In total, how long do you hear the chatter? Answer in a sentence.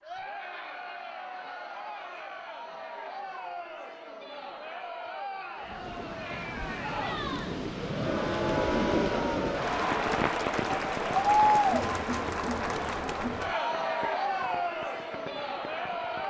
The chatter can be heard for 16 seconds in total.